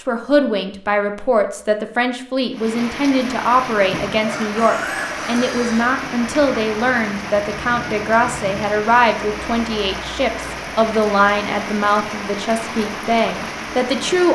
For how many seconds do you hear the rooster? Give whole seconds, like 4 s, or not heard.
2 s.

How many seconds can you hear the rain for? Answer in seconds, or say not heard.
12 s.